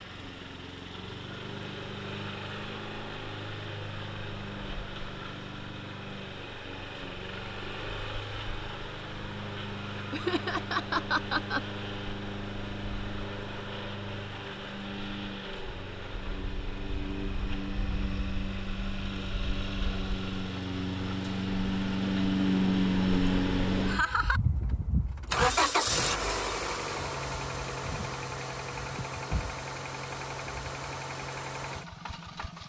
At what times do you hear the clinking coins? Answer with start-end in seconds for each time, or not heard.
not heard.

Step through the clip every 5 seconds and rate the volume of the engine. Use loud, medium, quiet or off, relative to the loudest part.
medium, medium, medium, medium, loud, loud, medium.